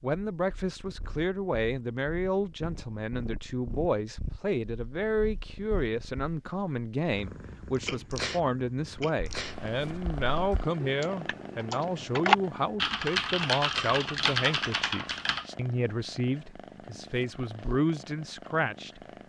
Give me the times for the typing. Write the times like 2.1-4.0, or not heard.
9.2-15.6.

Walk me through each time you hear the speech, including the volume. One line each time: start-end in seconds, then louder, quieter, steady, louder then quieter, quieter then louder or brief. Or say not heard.
0.0-19.0 steady.